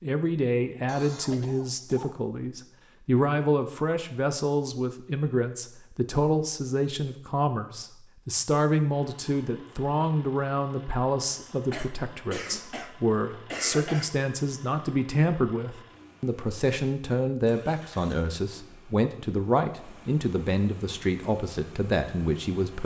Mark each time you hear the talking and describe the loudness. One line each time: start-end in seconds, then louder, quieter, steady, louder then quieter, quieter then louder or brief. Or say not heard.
0.0-22.8 steady.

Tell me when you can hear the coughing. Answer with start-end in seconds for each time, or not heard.
0.8-2.2, 11.7-14.1.